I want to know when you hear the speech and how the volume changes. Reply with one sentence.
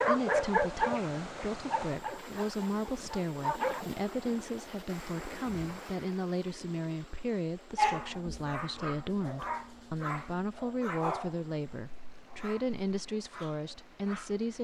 The speech can be heard from 0.1 to 14.5 s, at a steady volume.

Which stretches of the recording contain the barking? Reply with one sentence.
You can hear the barking from 0.0 to 3.9 s and from 7.8 to 14.5 s.